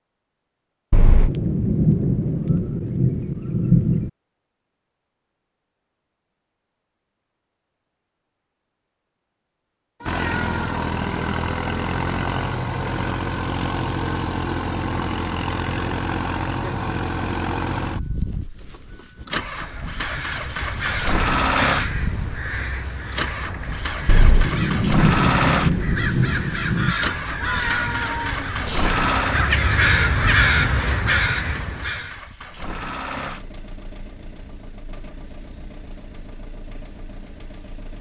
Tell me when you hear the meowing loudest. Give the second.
28 s.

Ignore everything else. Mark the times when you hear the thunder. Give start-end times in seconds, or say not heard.
0.9-4.1, 24.1-26.9.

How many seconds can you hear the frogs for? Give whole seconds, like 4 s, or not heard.
not heard.